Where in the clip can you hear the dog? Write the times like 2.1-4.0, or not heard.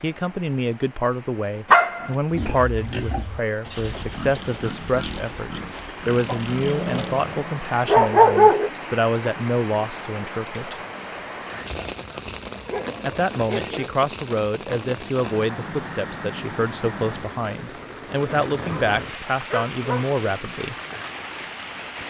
1.7-2.1, 6.2-8.7, 11.5-13.9, 18.6-20.1.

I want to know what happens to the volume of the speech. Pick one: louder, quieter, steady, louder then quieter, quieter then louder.
steady.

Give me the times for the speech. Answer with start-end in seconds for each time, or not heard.
0.0-10.8, 13.0-20.8.